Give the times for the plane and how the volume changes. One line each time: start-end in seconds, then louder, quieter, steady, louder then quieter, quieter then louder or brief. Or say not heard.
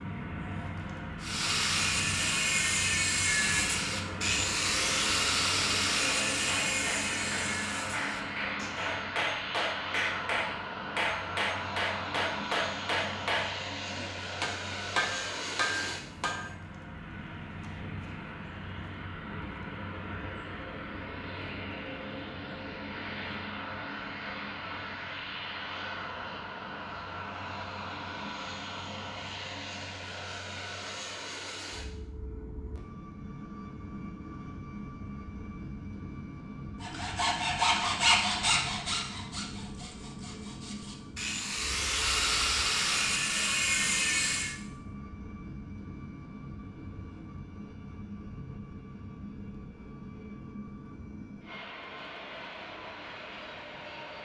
0.0-54.2 quieter.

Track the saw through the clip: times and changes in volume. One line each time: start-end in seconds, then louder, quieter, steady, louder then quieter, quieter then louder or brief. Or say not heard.
1.2-8.9 quieter
36.8-44.5 quieter then louder.